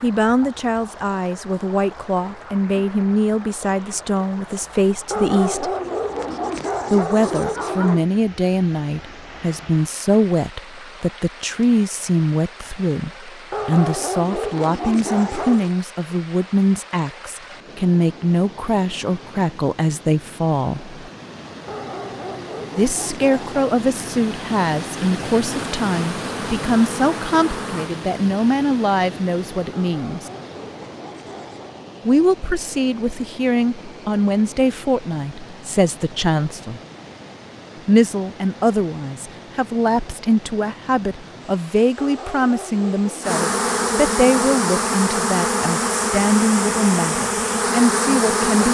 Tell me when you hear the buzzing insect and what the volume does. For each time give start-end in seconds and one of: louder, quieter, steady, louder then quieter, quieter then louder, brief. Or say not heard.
25.4-27.9 brief
43.2-48.6 steady.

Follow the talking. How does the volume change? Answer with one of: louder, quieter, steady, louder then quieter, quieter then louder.
steady.